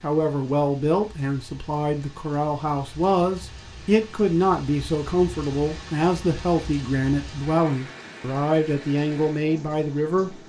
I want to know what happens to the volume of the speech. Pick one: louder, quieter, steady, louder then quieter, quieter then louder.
steady.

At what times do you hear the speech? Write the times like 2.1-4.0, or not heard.
0.0-10.3.